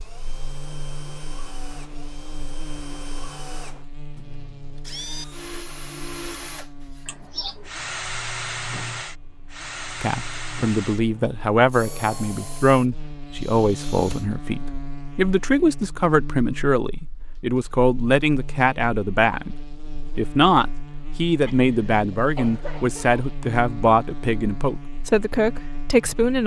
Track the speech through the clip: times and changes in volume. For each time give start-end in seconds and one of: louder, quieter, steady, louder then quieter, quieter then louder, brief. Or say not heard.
10.0-26.4 steady.